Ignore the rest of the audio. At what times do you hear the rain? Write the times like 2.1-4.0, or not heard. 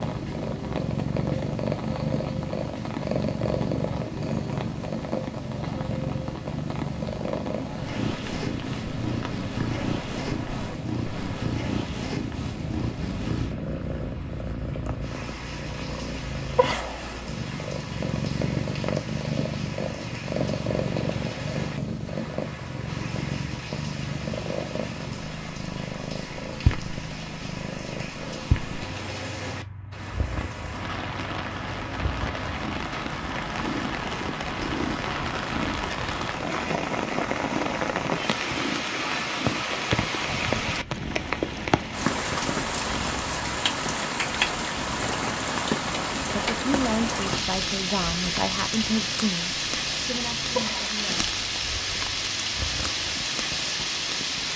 0.0-54.5.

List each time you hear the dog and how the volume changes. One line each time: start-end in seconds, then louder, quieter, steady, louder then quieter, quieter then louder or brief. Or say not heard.
not heard.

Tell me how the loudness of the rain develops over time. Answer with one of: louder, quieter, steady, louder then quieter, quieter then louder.
louder.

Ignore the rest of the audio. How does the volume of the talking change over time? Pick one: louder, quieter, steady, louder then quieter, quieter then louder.
quieter.